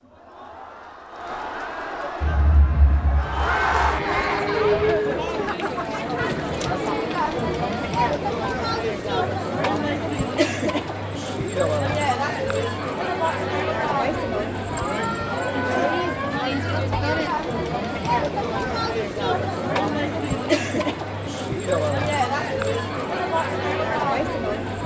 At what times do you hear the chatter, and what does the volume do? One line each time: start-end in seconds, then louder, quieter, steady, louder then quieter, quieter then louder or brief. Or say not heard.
0.0-24.8 steady.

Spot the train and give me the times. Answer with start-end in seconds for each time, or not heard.
2.2-5.0.